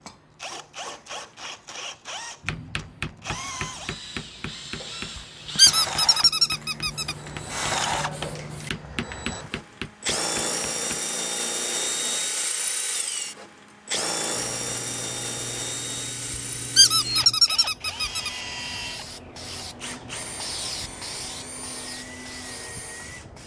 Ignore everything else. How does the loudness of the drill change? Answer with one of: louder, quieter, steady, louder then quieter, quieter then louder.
louder then quieter.